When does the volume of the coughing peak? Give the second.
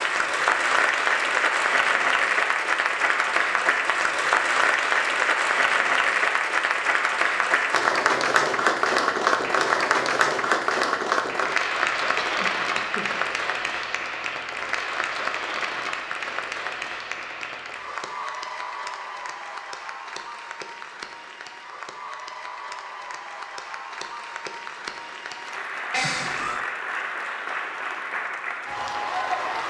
26 s.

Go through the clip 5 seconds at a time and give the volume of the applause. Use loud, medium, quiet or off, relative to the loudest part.
loud, loud, loud, medium, quiet, medium.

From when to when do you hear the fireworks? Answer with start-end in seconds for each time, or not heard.
not heard.